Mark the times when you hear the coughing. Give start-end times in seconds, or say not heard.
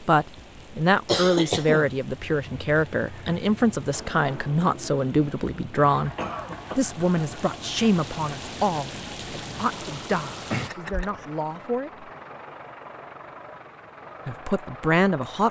1.1-1.9, 6.2-6.8, 10.5-11.2.